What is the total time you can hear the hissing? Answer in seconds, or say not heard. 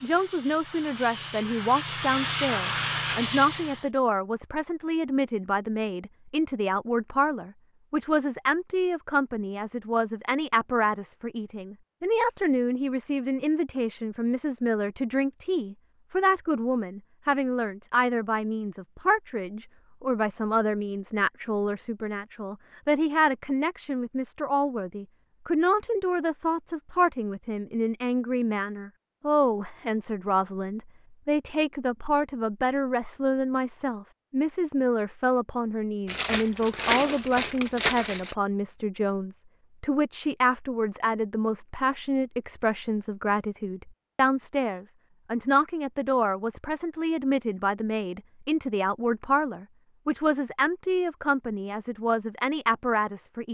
4 s.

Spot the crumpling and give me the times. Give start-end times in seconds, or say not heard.
36.0-38.4.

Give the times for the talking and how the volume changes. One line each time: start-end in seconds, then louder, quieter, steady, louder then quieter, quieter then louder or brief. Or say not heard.
0.0-53.4 steady.